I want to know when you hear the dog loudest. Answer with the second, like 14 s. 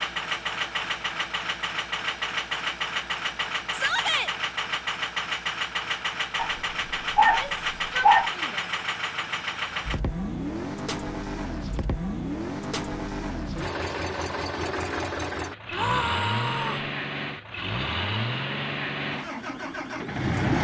8 s.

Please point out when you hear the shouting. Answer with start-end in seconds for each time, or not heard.
3.7-4.3, 7.2-8.7, 15.7-16.9.